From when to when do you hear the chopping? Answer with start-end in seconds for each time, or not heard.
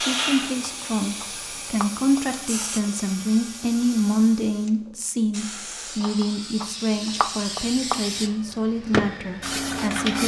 0.6-2.2, 6.0-8.5.